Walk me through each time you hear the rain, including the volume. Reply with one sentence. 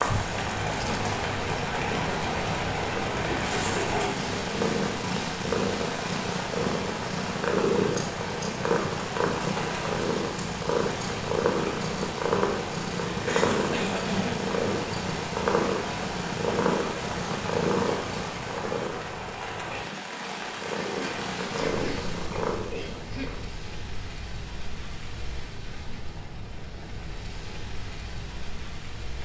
You can hear the rain from 0.0 to 29.2 s, getting quieter.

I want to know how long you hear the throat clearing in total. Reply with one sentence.
You can hear the throat clearing for 5 seconds altogether.